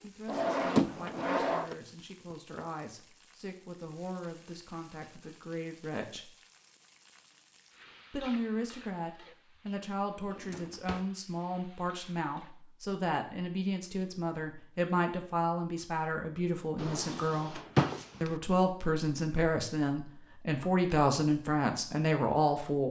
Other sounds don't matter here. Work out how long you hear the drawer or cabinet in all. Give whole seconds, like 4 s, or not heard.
4 s.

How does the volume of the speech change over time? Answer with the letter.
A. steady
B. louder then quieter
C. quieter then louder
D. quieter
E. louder
E.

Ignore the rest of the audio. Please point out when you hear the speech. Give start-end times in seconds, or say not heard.
0.0-6.3, 8.1-17.6, 18.2-22.8.